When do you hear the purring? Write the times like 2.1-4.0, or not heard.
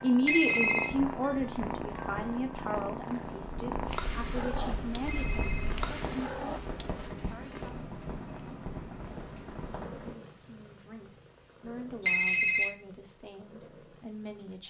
0.0-14.6.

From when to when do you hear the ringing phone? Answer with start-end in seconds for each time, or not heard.
0.2-0.9, 5.0-5.8, 12.1-12.7.